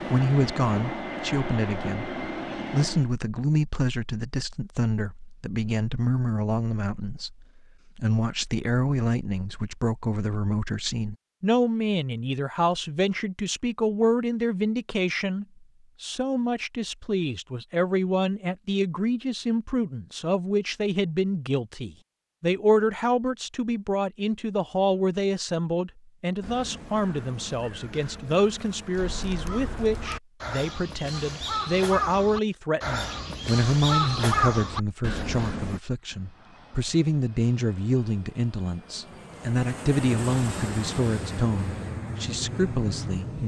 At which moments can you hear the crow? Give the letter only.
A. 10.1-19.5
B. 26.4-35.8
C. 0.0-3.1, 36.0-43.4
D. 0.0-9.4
B.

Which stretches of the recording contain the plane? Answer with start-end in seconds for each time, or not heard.
0.0-3.1, 36.0-43.4.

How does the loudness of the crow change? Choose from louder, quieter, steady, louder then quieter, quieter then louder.
louder.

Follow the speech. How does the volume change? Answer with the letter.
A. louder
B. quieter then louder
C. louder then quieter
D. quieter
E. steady
E.